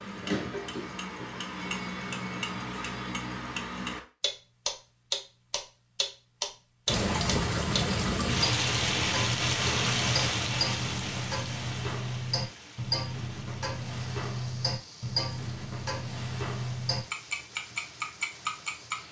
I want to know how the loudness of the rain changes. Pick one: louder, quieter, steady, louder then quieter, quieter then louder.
quieter.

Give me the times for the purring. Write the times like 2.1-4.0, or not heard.
not heard.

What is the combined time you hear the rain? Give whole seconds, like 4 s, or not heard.
12 s.